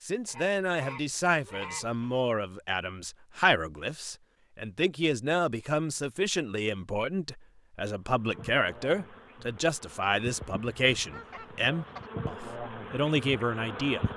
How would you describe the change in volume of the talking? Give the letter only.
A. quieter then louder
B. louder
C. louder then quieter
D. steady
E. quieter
D.